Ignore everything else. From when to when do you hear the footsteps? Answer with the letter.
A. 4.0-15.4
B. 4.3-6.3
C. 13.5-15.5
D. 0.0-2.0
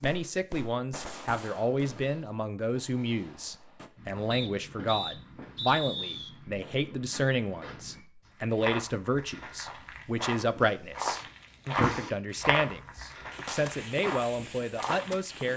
A.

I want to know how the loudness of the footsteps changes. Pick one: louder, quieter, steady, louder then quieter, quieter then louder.
louder then quieter.